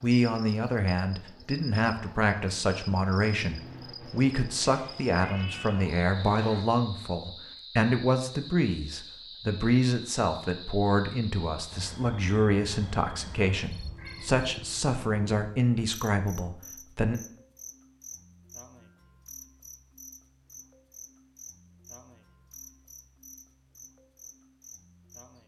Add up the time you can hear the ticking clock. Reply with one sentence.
You can't hear the ticking clock here.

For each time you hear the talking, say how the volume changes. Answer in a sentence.
You can hear the talking from 0.0 to 17.2 s, at a steady volume.